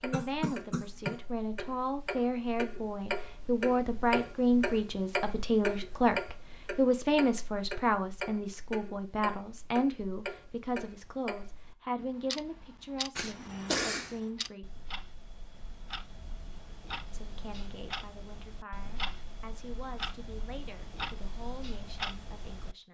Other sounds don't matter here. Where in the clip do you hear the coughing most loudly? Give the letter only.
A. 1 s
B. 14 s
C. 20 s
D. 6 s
B.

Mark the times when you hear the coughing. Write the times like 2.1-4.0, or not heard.
0.1-1.1, 13.2-14.2.